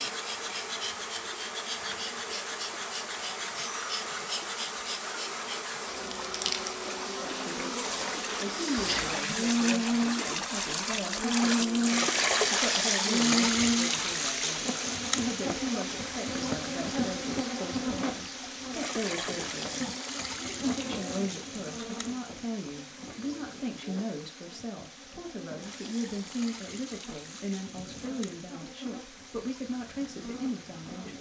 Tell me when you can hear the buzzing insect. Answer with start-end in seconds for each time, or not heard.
0.0-31.1.